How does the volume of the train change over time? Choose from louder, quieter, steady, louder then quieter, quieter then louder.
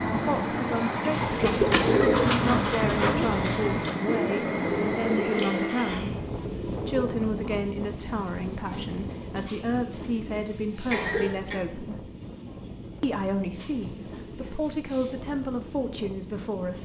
quieter.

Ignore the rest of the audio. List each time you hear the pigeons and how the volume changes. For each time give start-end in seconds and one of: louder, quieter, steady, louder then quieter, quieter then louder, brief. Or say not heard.
1.1-7.0 quieter.